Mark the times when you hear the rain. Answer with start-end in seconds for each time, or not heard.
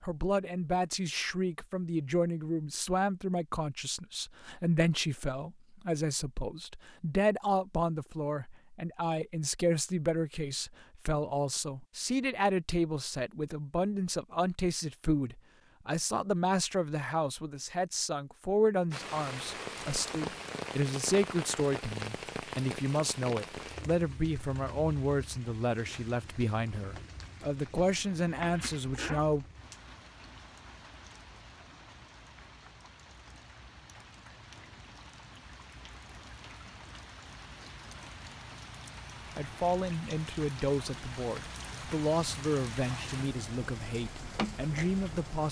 18.9-45.4.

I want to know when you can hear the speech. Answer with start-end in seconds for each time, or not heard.
0.0-29.4, 39.4-45.4.